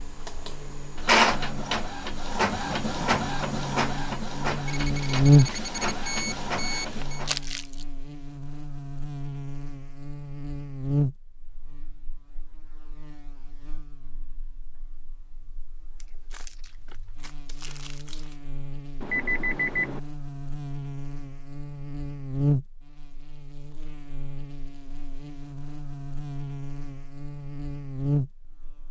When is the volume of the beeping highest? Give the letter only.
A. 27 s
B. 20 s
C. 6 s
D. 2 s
B.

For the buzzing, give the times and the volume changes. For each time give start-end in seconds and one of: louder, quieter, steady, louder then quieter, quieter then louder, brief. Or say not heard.
0.0-28.8 quieter then louder.